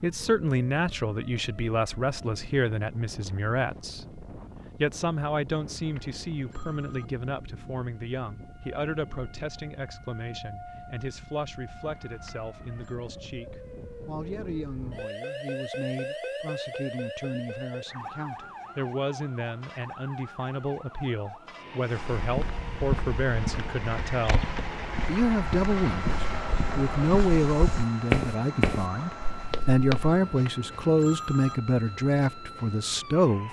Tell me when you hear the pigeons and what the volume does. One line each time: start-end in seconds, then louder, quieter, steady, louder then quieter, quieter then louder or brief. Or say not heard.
not heard.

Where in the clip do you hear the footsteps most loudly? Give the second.
28 s.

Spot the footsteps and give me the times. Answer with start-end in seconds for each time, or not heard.
22.1-30.2.